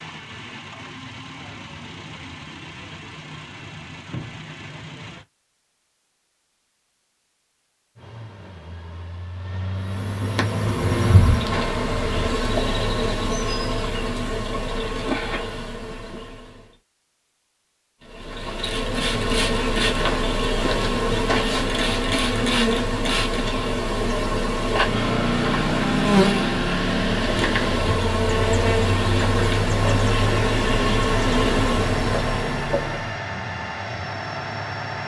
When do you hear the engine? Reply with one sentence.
The engine can be heard from 0.0 to 5.2 s, from 8.0 to 12.4 s and from 24.9 to 35.0 s.